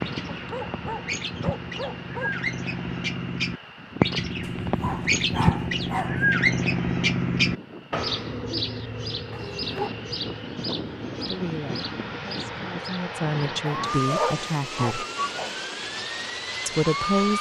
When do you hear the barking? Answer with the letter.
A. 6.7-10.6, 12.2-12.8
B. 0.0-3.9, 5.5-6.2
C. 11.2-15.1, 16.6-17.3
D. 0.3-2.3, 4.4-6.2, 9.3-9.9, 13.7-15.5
D.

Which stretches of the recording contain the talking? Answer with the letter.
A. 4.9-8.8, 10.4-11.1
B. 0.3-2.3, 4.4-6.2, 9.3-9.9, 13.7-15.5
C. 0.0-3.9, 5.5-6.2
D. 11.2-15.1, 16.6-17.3
D.